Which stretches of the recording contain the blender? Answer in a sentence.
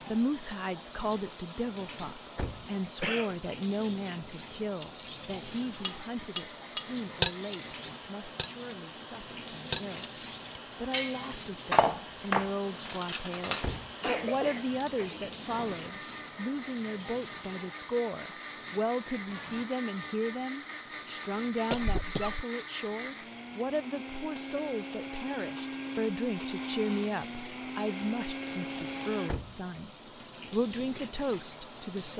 You can hear the blender from 6.0 to 29.3 s.